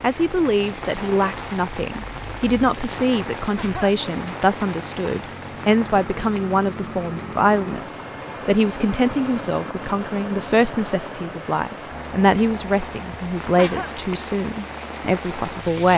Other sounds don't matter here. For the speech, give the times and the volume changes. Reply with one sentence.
The speech can be heard from 0.0 to 15.9 s, at a steady volume.